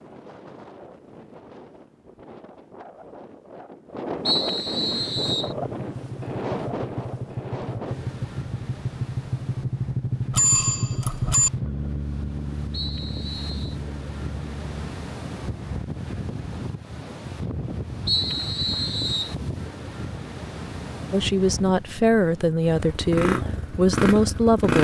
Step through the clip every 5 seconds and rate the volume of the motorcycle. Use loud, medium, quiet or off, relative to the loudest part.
off, medium, medium, off, loud.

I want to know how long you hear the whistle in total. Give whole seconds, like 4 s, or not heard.
4 s.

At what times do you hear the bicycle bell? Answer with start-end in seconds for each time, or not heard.
10.3-11.5.